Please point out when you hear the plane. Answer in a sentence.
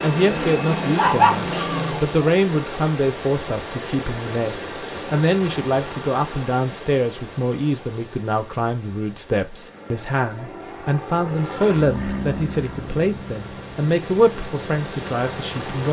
The plane can be heard from 0.0 to 2.3 s and from 9.3 to 15.7 s.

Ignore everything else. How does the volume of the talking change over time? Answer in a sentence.
The loudness of the talking stays about the same.